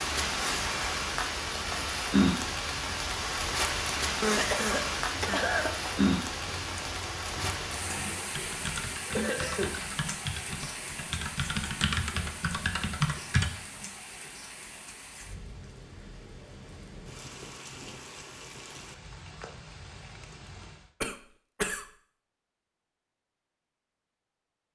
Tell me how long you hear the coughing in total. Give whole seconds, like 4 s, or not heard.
3 s.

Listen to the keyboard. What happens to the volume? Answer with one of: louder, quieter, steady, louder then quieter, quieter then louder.
louder.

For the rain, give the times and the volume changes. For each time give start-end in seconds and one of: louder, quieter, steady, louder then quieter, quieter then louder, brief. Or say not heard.
0.0-20.9 quieter.